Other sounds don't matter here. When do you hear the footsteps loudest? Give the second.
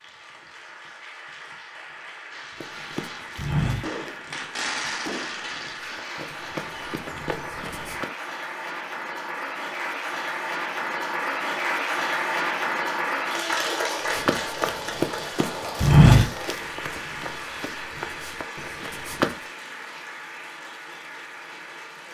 16 s.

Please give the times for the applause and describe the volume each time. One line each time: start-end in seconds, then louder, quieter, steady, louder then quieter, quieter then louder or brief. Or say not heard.
0.0-22.0 louder then quieter.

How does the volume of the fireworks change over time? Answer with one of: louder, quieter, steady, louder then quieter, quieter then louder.
louder then quieter.